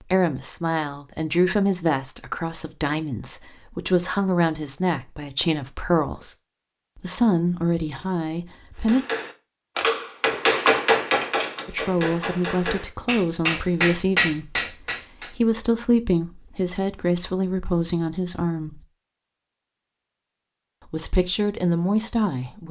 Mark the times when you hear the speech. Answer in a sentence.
You can hear the speech from 0.0 to 6.3 s, from 7.0 to 9.0 s, from 11.7 to 18.9 s and from 20.9 to 22.6 s.